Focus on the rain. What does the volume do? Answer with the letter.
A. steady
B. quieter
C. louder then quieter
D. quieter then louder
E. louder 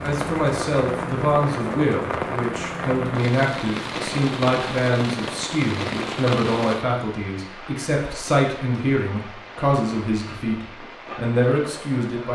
B.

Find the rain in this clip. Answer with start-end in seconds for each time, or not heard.
0.0-12.2.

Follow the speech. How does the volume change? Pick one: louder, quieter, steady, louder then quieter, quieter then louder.
steady.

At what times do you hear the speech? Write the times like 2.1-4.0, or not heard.
0.0-12.2.